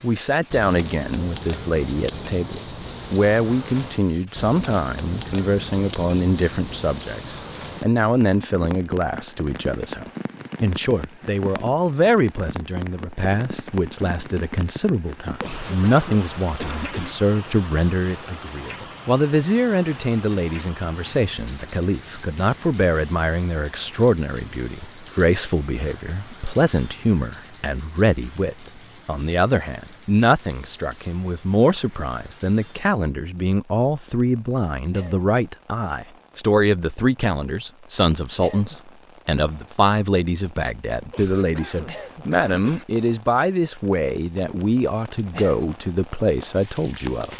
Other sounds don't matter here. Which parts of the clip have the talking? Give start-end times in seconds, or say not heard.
0.0-47.3.